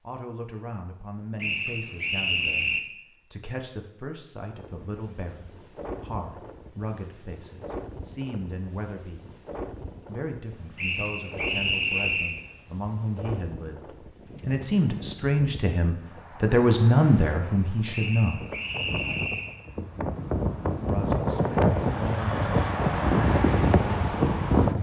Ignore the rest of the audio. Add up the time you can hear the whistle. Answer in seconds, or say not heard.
5 s.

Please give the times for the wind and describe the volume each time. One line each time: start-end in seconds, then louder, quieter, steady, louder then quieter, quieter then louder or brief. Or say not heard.
4.5-24.7 louder.